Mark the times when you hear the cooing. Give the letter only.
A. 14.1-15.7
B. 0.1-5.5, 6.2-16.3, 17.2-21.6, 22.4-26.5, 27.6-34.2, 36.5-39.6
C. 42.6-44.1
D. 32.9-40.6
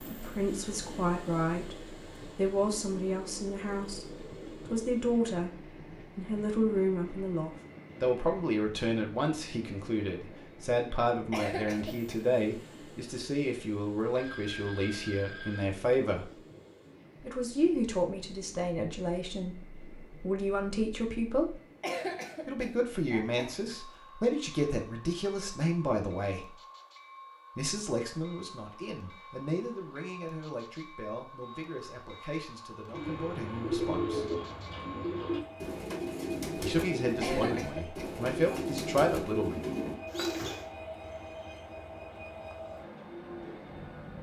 D.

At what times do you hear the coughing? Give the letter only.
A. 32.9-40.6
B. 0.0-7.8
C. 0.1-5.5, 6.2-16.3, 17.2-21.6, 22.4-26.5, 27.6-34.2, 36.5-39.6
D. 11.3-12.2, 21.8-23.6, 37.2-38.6
D.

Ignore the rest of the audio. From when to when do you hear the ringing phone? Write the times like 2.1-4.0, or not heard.
14.1-15.7.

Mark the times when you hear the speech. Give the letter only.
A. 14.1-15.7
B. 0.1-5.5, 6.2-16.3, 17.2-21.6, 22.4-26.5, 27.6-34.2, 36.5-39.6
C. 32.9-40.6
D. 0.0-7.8
B.